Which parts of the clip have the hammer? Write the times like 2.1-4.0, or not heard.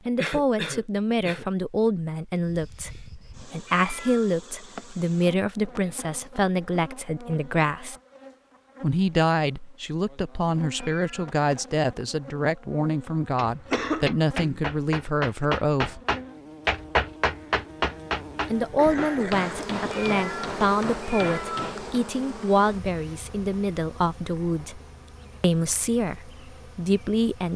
13.3-21.9.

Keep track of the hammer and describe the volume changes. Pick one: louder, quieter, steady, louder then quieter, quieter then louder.
louder then quieter.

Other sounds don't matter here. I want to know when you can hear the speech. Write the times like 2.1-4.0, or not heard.
0.1-8.0, 8.8-16.0, 18.5-24.8, 25.4-27.5.